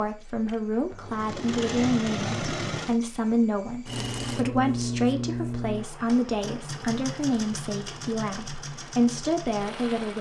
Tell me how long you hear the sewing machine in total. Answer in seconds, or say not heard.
10 s.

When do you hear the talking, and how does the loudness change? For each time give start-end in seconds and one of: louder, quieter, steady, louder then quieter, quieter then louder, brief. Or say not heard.
0.0-10.1 steady.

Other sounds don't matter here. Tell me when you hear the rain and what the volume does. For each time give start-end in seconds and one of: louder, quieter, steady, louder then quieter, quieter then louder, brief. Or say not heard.
not heard.